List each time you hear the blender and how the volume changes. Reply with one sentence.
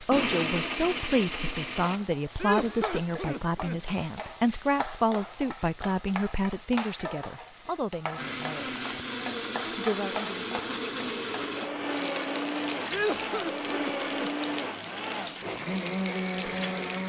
You can hear the blender briefly from 0.0 to 2.0 s; and from 8.2 to 17.0 s, at a steady volume.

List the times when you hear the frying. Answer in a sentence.
You can hear the frying from 0.0 to 17.0 s.